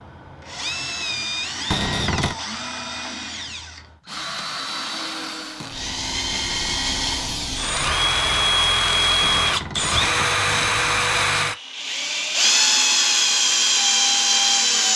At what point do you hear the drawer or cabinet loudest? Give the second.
2 s.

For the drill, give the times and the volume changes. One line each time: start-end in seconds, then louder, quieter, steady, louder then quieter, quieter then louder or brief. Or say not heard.
0.0-14.9 louder.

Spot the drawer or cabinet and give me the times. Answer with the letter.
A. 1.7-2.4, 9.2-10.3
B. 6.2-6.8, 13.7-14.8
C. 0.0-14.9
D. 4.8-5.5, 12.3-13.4
A.